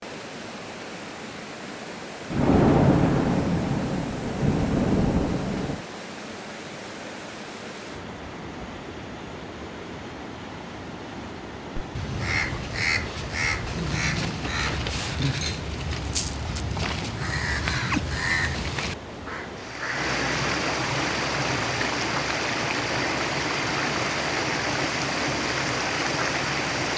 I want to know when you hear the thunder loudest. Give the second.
3 s.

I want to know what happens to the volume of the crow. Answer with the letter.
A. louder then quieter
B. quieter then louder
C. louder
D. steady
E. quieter
D.